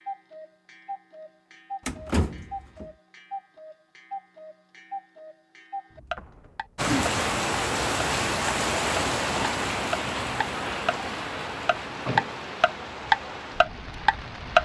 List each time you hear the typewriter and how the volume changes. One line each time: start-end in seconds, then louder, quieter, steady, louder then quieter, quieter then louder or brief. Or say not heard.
not heard.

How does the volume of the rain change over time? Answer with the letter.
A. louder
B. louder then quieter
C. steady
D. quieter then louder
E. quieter
E.